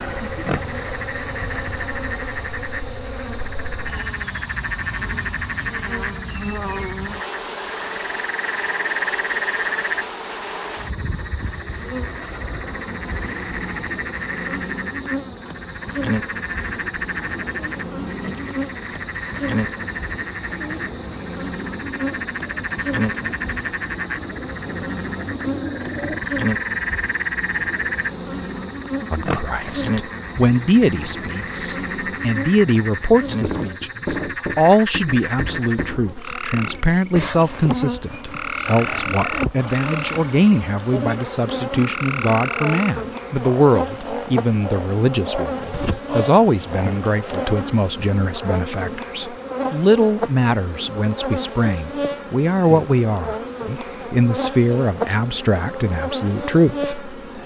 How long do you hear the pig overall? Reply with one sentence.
You can hear the pig for 2 seconds altogether.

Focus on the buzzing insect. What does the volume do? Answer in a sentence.
The volume of the buzzing insect stays about the same.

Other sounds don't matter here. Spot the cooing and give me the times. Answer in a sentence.
The cooing can be heard from 16.6 to 26.2 s.